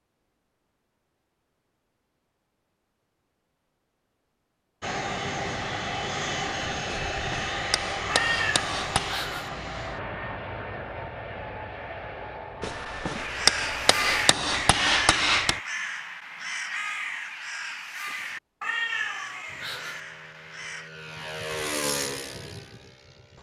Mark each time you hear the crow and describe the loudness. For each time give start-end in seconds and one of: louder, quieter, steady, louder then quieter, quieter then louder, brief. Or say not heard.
13.2-20.9 quieter.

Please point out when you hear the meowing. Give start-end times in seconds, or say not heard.
8.1-9.5, 18.6-20.0.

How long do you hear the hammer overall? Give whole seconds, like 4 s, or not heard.
5 s.